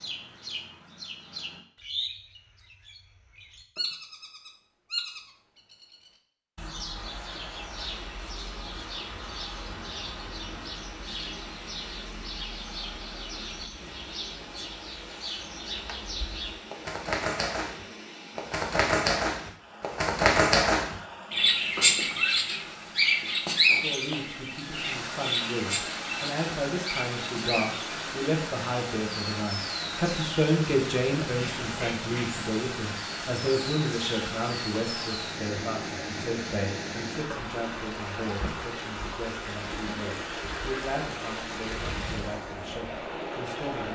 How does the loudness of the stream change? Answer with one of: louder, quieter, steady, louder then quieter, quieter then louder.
louder.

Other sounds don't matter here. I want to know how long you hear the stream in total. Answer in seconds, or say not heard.
37 s.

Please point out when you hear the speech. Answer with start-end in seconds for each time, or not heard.
23.8-43.9.